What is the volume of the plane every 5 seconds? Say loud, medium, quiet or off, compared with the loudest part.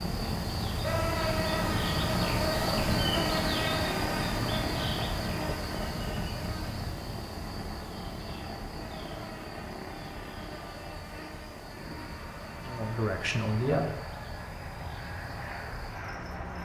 loud, medium, medium, medium.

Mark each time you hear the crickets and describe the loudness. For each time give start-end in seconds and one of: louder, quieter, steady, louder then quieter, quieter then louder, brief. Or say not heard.
0.0-16.6 quieter.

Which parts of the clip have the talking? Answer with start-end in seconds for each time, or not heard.
12.7-14.0.